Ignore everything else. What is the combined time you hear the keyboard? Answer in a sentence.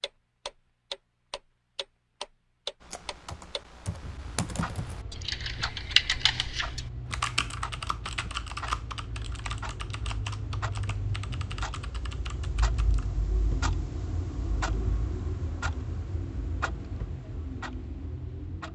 You can hear the keyboard for 10 seconds altogether.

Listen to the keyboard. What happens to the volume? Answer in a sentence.
The volume of the keyboard goes up, then down.